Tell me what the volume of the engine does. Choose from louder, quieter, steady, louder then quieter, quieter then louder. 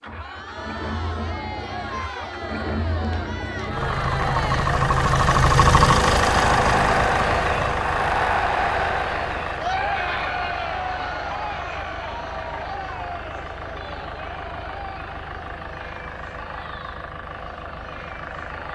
louder then quieter.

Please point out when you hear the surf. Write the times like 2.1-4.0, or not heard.
not heard.